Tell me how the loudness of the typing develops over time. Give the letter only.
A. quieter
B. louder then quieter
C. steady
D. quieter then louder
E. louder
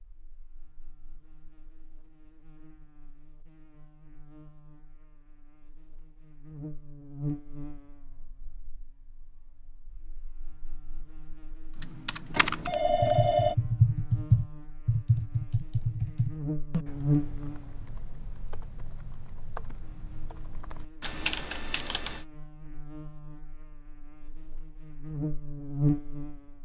D.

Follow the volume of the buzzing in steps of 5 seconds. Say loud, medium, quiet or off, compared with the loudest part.
quiet, quiet, quiet, loud, quiet, loud.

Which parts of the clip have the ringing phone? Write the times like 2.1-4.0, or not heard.
12.3-13.6.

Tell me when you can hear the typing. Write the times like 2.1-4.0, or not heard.
11.8-22.2.